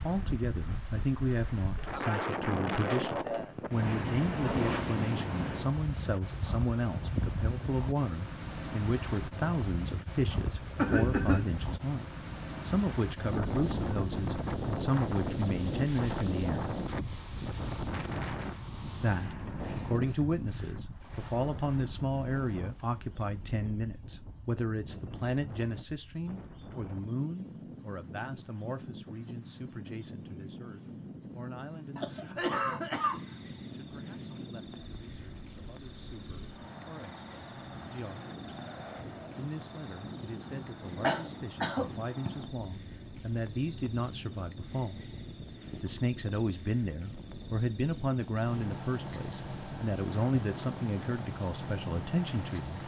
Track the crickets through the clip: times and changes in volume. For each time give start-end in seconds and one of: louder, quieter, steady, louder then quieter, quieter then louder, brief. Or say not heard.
20.1-52.8 louder.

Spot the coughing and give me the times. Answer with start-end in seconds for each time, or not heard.
10.8-11.5, 31.9-33.2, 41.0-42.3.